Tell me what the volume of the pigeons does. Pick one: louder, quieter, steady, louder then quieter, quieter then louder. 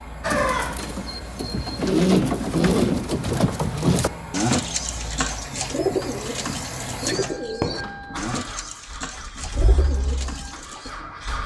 quieter.